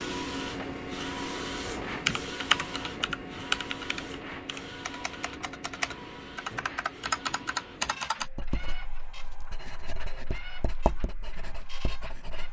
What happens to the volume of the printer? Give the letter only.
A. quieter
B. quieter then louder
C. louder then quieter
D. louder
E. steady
A.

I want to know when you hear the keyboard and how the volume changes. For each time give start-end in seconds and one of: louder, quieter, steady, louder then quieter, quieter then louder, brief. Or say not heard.
1.9-8.2 quieter then louder.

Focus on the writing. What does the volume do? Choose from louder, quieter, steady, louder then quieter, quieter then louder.
louder then quieter.